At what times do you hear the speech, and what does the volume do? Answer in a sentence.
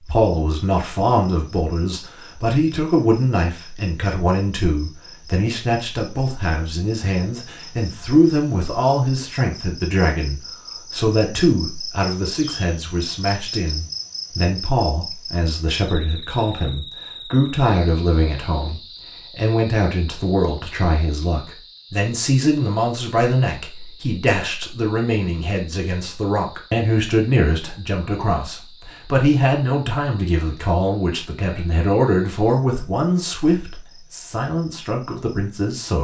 You can hear the speech from 0.0 to 35.9 s, at a steady volume.